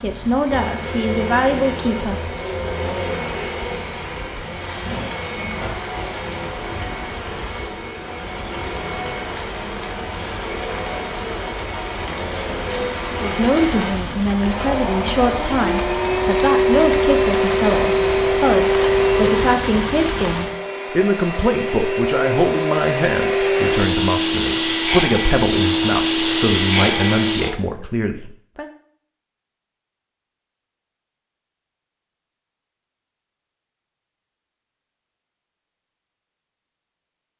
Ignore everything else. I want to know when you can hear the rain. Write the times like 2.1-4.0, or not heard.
0.0-20.6.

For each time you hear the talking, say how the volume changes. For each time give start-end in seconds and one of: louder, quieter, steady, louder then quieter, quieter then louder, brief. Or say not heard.
0.0-2.2 brief
13.2-28.7 steady.